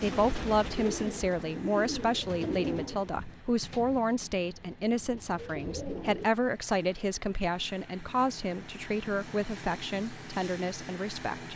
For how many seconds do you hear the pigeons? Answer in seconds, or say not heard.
6 s.